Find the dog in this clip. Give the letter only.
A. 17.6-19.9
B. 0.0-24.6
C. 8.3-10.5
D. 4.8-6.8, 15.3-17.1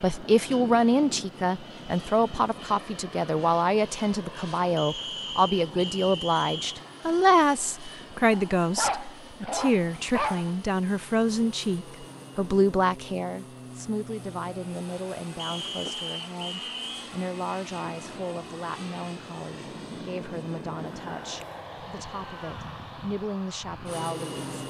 C.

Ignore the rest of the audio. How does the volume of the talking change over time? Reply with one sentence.
The loudness of the talking goes down.